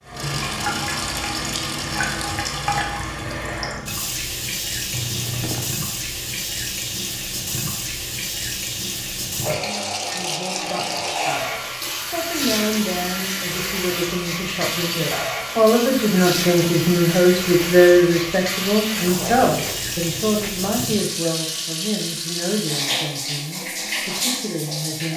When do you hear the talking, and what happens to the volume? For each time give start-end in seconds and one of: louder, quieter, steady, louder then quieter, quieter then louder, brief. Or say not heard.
10.1-25.1 louder then quieter.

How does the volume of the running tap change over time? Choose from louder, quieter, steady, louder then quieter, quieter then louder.
steady.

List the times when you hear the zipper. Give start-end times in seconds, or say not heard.
4.9-5.8, 18.9-20.5.